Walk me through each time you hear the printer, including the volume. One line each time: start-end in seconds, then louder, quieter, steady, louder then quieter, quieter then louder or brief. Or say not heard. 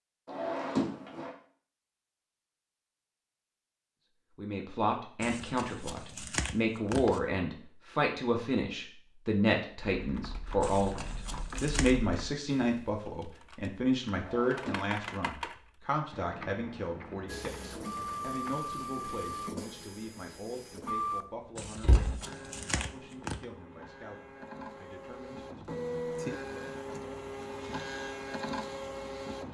17.2-29.4 quieter then louder.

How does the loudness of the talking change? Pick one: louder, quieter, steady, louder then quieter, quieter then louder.
quieter.